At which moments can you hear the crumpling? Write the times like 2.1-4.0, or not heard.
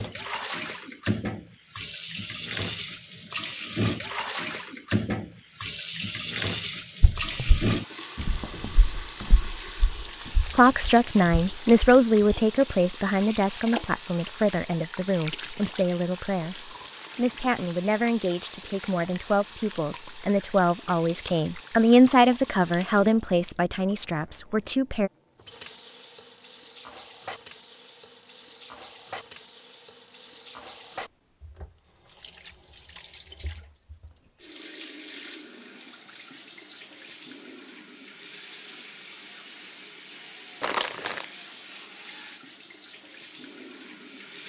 40.6-41.2.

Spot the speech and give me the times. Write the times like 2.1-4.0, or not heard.
10.6-25.1.